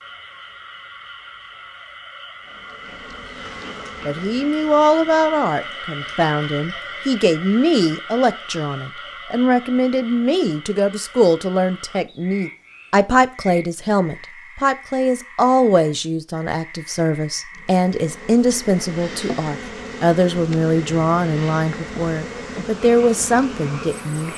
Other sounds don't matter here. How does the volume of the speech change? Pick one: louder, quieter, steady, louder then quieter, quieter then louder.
steady.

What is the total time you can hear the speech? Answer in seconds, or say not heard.
20 s.